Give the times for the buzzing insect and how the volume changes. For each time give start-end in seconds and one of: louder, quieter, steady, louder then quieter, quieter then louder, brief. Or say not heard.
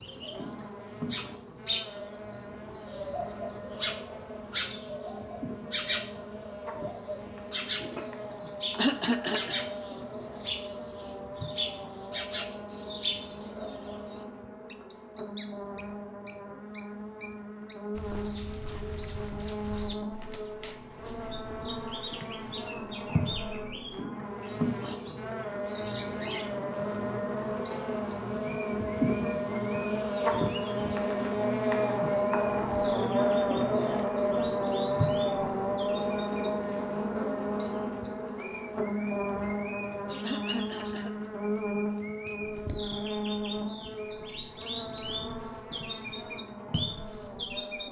0.0-47.8 louder then quieter.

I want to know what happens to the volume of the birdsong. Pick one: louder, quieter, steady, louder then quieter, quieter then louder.
quieter then louder.